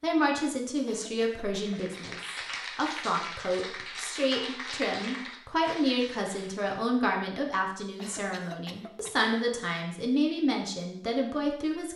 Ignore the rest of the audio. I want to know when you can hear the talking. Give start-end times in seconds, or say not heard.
0.0-11.9.